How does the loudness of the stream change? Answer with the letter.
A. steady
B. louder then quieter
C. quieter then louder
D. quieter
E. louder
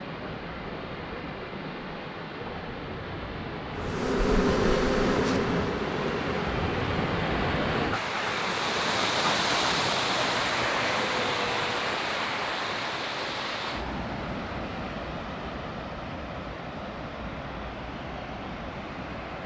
B.